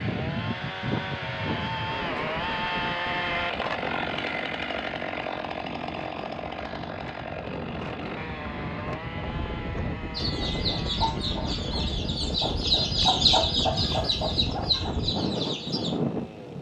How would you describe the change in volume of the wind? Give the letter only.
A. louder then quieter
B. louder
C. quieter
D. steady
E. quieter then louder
E.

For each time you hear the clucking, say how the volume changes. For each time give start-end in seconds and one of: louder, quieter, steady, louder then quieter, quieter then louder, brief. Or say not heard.
10.1-15.9 louder then quieter.